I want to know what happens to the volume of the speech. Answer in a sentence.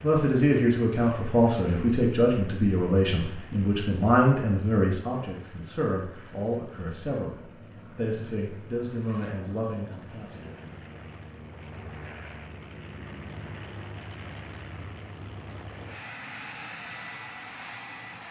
The loudness of the speech goes down.